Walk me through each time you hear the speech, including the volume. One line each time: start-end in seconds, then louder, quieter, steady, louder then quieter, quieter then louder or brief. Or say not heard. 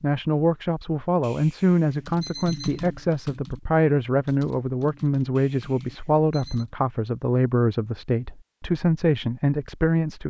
0.0-10.2 steady.